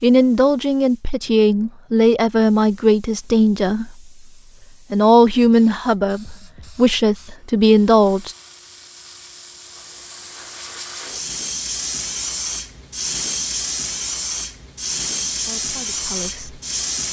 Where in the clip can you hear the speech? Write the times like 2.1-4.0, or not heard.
0.0-4.0, 4.9-8.3, 15.3-16.6.